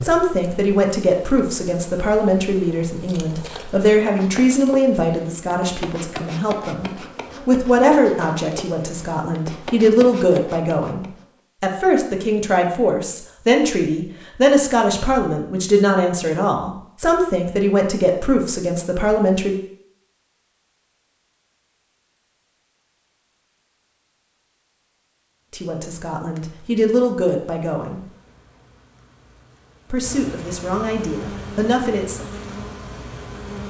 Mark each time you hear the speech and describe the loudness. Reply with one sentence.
You can hear the speech from 0.0 to 19.6 s, at a steady volume; briefly from 25.5 to 28.0 s; and briefly from 29.9 to 32.2 s.